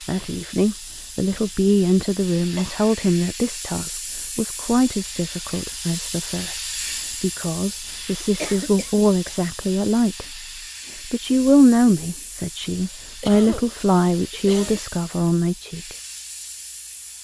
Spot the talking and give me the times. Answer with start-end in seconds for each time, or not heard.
0.1-10.4, 11.1-15.9.